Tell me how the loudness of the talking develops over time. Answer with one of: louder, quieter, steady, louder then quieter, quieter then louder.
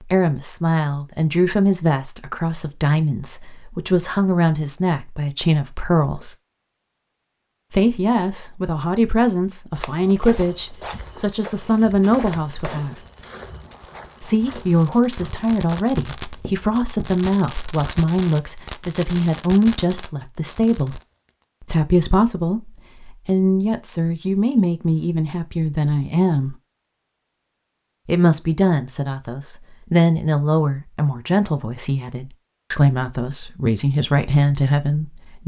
steady.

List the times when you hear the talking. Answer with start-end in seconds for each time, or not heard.
0.1-6.3, 7.7-12.9, 14.2-21.0, 21.6-26.6, 28.1-35.4.